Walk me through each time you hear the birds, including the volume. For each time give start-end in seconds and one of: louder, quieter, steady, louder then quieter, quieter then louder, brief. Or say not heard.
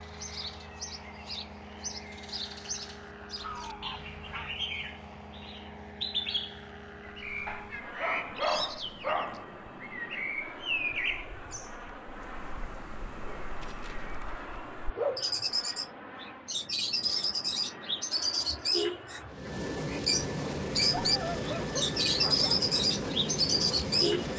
0.0-24.3 louder.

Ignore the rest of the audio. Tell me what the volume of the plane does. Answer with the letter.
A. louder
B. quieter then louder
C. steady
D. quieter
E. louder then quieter
A.